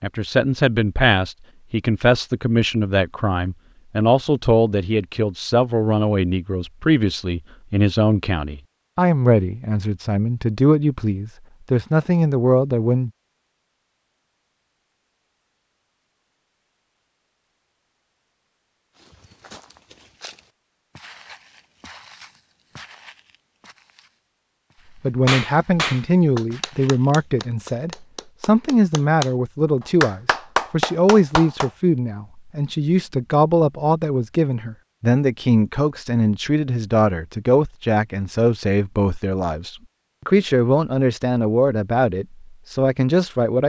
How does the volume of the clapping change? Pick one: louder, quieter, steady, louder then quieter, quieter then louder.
quieter then louder.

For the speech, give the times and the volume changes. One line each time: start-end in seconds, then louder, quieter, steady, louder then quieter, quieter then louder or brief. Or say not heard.
0.0-13.1 steady
25.0-43.6 steady.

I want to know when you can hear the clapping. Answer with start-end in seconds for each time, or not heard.
25.2-31.7.